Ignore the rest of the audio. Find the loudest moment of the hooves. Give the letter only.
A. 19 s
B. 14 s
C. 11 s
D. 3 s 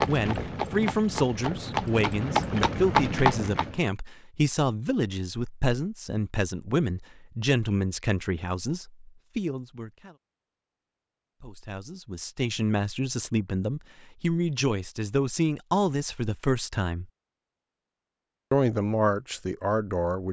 D.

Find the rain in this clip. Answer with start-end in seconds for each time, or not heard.
not heard.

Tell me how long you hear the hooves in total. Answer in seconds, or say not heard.
4 s.